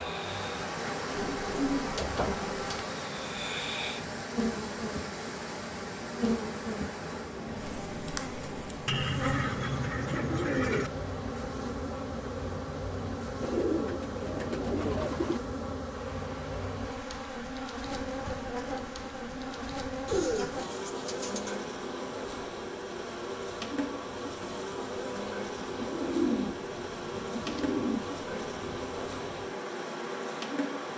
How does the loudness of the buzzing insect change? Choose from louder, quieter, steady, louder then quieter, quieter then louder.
steady.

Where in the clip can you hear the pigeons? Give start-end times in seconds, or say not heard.
1.1-2.9, 8.8-10.9, 13.4-15.4, 20.1-21.6, 25.6-28.0.